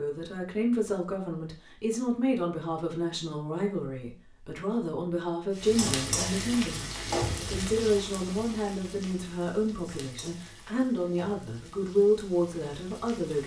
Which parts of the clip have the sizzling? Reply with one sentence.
The sizzling can be heard from 5.5 to 13.4 s.